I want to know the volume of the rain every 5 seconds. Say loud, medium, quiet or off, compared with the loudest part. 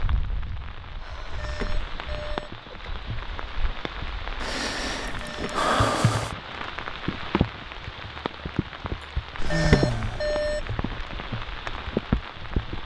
medium, loud, loud.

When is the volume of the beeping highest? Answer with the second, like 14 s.
10 s.